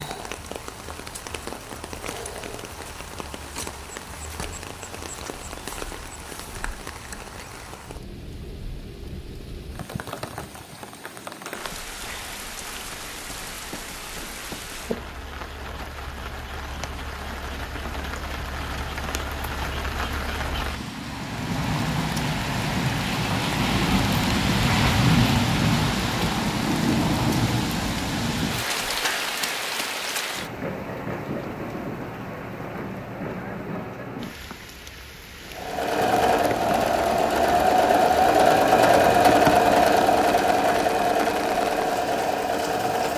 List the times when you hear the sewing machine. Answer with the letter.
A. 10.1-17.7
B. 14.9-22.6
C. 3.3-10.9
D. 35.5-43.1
D.